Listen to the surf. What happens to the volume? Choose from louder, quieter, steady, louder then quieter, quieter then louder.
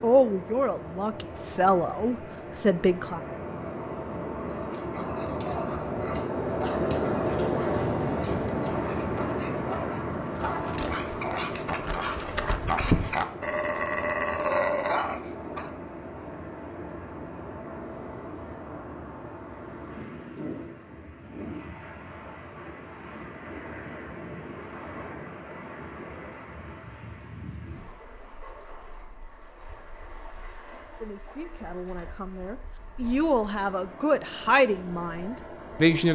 quieter.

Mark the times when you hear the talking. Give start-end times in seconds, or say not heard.
0.0-3.2, 31.0-36.0.